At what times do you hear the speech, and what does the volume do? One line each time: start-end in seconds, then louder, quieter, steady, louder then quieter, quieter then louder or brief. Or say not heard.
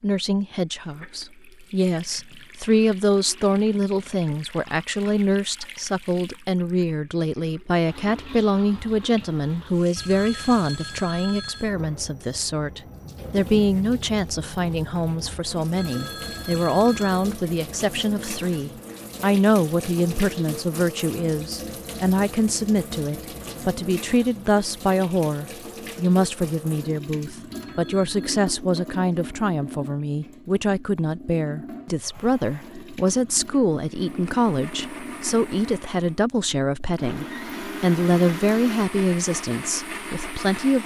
0.0-40.8 steady.